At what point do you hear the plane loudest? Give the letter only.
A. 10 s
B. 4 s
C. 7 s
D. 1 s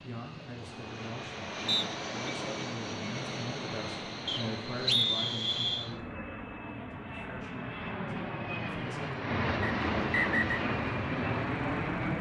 A.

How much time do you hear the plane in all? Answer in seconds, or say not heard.
12 s.